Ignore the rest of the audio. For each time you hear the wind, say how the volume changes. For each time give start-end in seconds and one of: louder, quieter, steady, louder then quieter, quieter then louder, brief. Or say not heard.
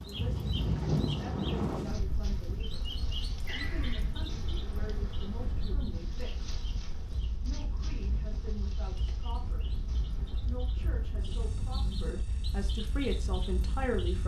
0.0-14.1 quieter.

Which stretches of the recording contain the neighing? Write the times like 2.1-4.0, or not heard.
3.5-4.1.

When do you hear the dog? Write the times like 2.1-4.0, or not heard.
not heard.